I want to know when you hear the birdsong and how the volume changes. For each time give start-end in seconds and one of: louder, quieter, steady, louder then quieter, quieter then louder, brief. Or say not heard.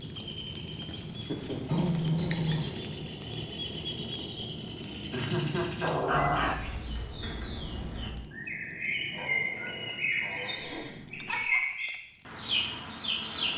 0.0-13.5 louder.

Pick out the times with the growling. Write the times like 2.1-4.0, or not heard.
1.5-2.8, 5.8-6.6, 9.1-10.9.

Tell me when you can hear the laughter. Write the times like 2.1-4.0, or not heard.
1.2-1.9, 5.1-6.5, 10.7-11.6.